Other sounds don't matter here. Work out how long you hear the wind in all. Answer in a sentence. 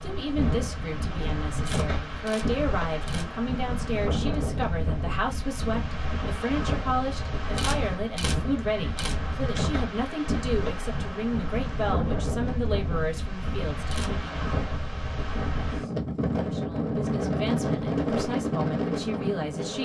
The wind can be heard for 20 seconds in total.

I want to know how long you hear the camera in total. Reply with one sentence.
You can hear the camera for 4 seconds altogether.